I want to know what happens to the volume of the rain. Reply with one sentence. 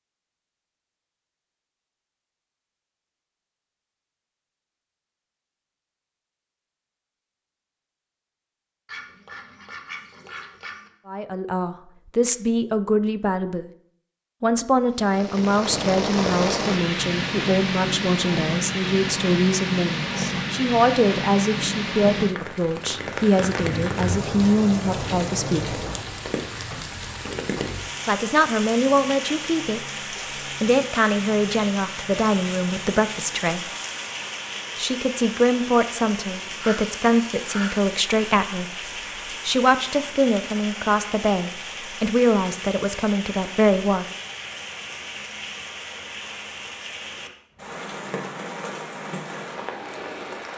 The loudness of the rain goes down.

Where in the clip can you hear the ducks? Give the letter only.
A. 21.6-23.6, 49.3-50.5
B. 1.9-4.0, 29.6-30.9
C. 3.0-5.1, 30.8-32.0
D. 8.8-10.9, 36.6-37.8
D.